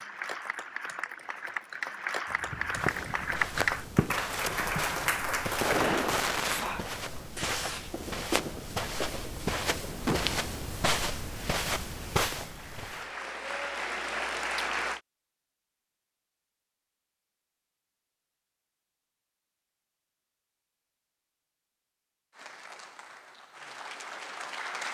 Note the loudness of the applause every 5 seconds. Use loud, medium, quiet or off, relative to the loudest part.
loud, loud, loud, off, medium.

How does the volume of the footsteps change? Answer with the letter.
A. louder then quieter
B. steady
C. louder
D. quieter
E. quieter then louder
C.